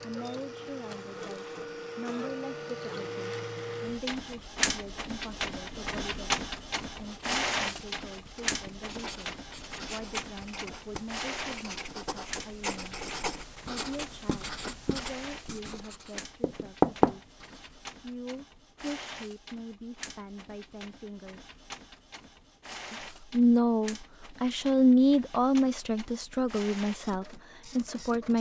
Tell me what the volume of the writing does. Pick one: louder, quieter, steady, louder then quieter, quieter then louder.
louder.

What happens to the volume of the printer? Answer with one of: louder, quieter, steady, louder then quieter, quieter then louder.
quieter.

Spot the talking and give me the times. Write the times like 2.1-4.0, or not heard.
0.0-13.0, 13.7-17.2, 18.0-21.5, 22.9-28.3.